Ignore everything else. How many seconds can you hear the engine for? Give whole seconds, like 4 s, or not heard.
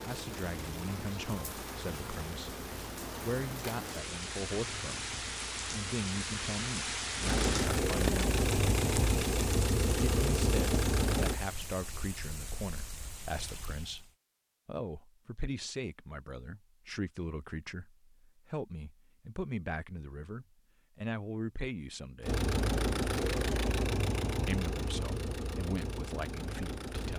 16 s.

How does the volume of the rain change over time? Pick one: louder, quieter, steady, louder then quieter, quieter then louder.
louder then quieter.